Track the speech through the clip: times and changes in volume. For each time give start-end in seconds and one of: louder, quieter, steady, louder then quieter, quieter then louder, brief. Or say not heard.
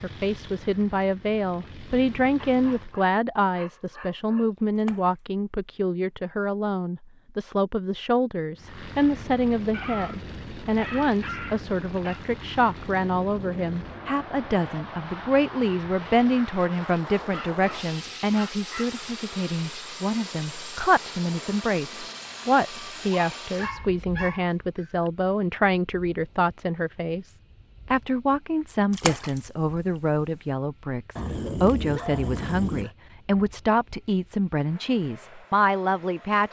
0.0-36.4 steady.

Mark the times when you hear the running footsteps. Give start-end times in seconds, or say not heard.
not heard.